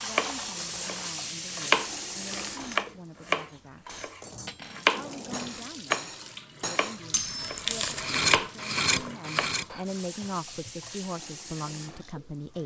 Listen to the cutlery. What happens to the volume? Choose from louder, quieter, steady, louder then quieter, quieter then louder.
louder.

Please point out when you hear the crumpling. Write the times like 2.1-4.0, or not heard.
2.1-2.9, 7.1-8.2.